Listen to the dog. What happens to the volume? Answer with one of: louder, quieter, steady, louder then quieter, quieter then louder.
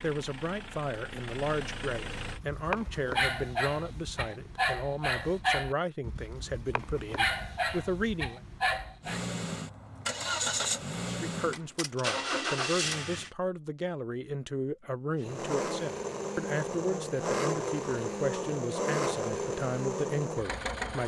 steady.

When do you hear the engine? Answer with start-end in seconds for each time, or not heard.
0.0-2.4, 9.0-13.3, 15.2-21.0.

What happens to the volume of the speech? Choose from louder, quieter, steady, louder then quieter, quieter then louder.
steady.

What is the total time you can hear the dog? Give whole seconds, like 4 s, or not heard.
7 s.